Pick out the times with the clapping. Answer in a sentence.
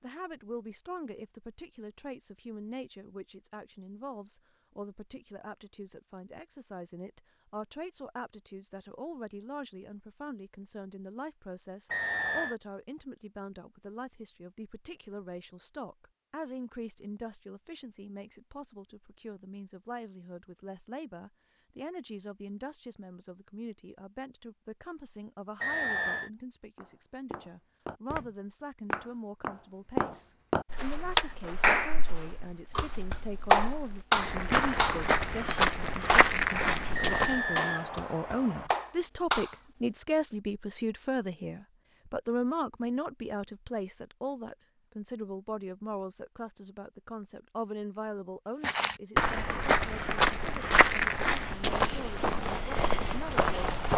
You can hear the clapping from 31.1 to 39.5 s.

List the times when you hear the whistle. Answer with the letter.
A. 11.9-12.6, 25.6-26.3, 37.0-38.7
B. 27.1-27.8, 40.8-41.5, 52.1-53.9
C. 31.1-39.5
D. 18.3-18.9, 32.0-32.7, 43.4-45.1
A.